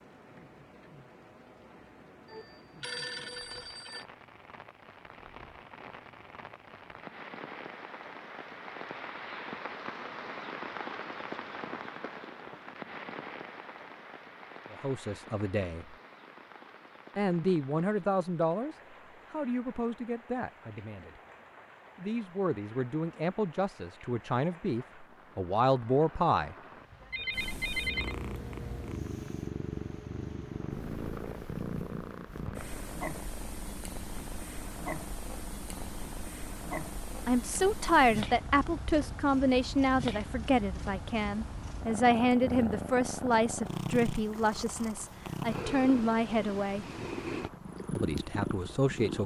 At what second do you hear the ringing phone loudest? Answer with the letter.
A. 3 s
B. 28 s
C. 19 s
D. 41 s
B.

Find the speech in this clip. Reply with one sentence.
You can hear the speech from 14.7 to 15.8 s, from 17.1 to 21.2 s, from 21.9 to 26.6 s, from 37.2 to 46.9 s and from 48.0 to 49.2 s.